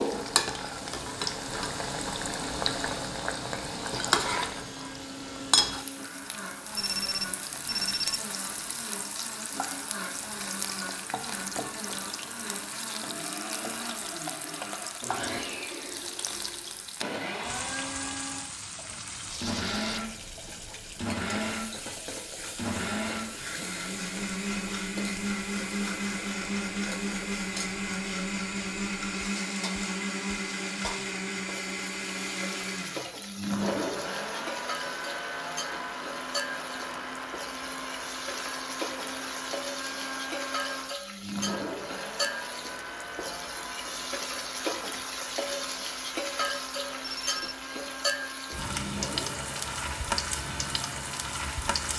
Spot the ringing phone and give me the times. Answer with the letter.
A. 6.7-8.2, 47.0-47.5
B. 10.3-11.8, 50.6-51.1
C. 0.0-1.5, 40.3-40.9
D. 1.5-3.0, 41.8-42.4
A.